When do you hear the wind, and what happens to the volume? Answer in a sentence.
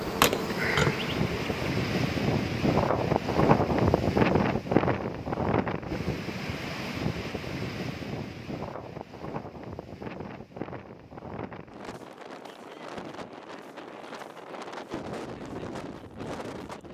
You can hear the wind from 0.0 to 16.8 s, getting quieter.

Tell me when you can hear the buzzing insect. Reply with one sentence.
You can hear the buzzing insect from 0.0 to 1.8 s.